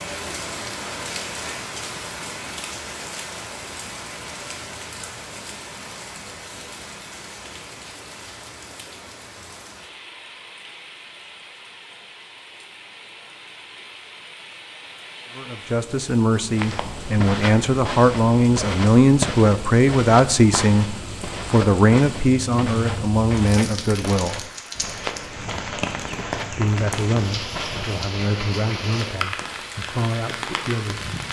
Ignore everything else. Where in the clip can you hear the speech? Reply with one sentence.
You can hear the speech from 15.3 to 24.4 s and from 26.4 to 31.1 s.